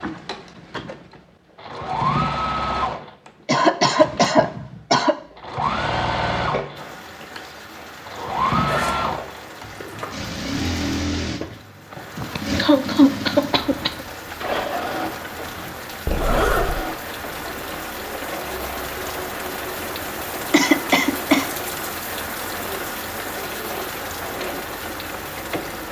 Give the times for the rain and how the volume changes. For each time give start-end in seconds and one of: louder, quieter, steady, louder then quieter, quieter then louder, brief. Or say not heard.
6.8-25.8 louder.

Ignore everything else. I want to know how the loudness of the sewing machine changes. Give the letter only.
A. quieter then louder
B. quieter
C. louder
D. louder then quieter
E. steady
B.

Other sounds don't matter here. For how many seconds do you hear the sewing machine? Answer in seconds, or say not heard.
26 s.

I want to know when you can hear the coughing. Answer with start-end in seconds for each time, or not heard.
3.5-5.2, 11.9-14.1, 20.5-21.4.